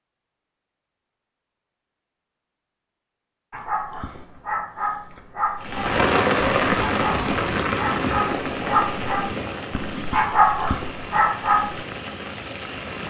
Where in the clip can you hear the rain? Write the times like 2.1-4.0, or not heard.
5.6-13.0.